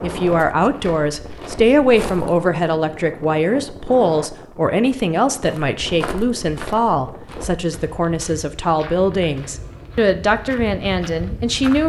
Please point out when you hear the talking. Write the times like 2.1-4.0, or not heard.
0.0-11.8.